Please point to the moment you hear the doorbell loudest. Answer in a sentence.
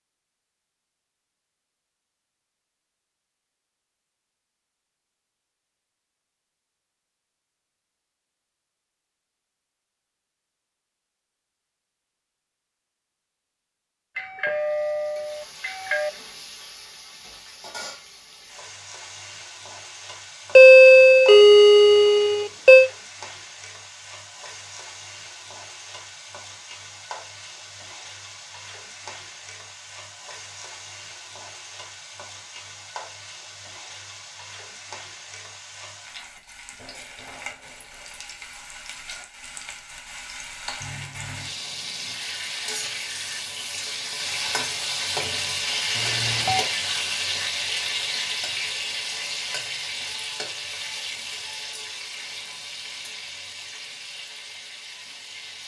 The volume of the doorbell peaks at 21 seconds.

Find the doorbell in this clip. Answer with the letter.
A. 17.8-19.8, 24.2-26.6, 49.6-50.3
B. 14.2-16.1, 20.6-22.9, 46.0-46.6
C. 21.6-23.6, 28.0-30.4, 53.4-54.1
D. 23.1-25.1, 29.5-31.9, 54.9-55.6
B.